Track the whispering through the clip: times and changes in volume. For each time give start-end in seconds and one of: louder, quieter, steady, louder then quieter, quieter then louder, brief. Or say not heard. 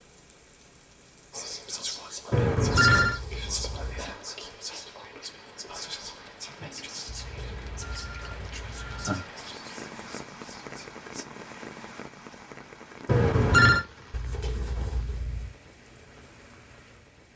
1.3-11.2 quieter.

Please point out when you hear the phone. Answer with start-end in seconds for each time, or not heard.
2.3-3.2, 7.3-9.2, 13.1-13.8.